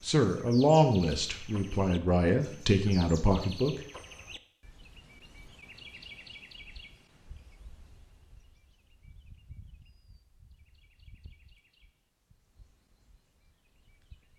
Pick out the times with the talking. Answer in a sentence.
The talking can be heard from 0.0 to 3.9 s.